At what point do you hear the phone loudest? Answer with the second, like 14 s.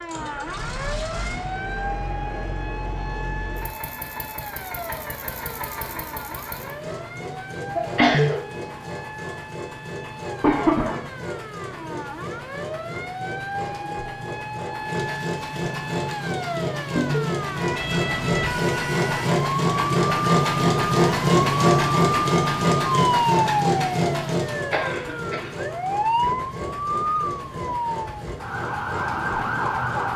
8 s.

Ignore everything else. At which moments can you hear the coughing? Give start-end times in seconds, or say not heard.
7.8-8.4, 10.4-11.0, 24.5-25.6.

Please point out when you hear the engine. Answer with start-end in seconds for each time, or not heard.
0.0-30.1.